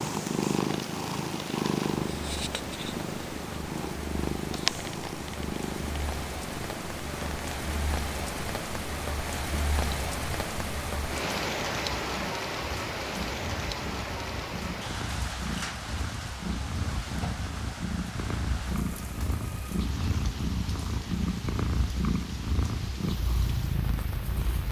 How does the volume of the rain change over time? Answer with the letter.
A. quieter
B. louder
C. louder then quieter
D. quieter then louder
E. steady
C.